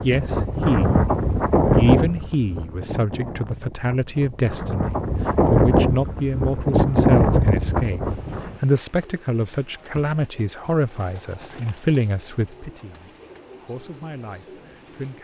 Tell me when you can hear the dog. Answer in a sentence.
You can't hear the dog here.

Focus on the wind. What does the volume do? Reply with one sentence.
The loudness of the wind goes down, then up.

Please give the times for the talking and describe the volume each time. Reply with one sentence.
The talking can be heard briefly from 0.0 to 1.1 s; and from 1.8 to 15.2 s, getting quieter.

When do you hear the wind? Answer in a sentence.
You can hear the wind from 0.0 to 8.6 s.